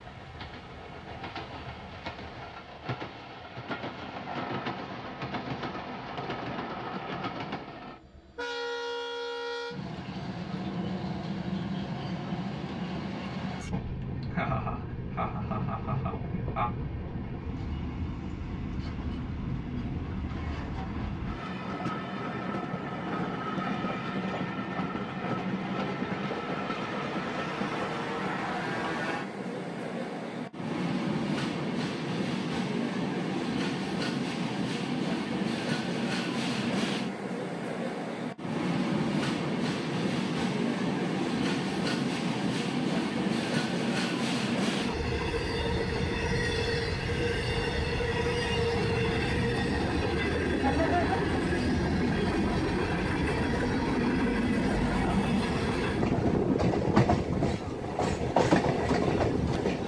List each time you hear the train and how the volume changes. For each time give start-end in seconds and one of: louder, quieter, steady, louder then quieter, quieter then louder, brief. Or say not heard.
0.0-59.8 louder.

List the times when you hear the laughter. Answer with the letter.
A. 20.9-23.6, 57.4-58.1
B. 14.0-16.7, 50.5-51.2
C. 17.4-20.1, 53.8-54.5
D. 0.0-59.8
B.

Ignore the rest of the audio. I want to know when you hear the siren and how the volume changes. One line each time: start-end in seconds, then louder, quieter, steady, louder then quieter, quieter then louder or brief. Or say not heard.
not heard.